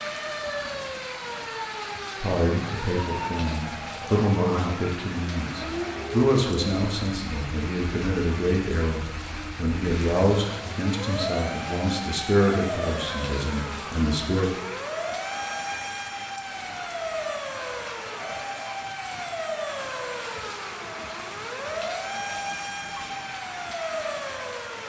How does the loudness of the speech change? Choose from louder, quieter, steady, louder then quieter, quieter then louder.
steady.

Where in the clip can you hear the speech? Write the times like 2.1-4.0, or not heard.
2.2-14.5.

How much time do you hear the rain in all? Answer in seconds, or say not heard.
25 s.